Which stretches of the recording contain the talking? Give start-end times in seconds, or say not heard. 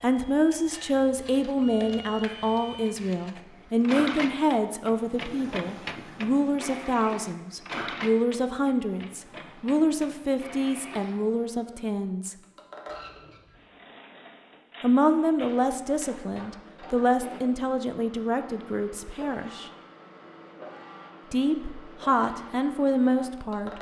0.0-12.3, 14.8-19.7, 21.3-23.7.